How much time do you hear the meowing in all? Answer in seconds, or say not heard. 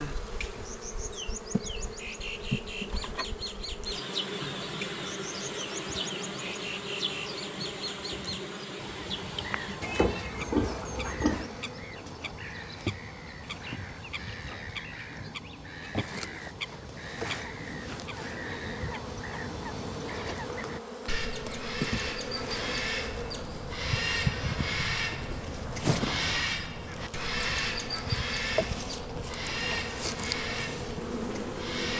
2 s.